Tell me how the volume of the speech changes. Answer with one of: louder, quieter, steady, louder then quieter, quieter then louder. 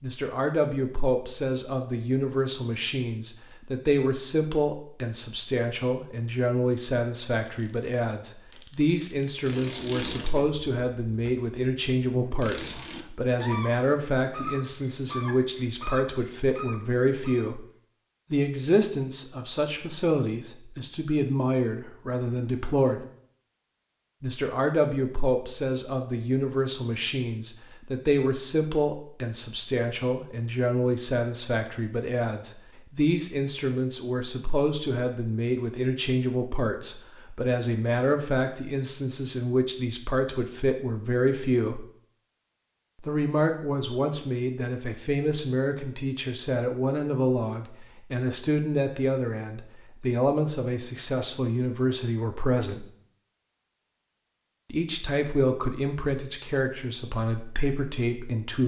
steady.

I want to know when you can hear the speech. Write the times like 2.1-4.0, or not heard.
0.0-17.6, 18.3-23.1, 24.2-41.9, 43.0-52.9, 54.7-58.6.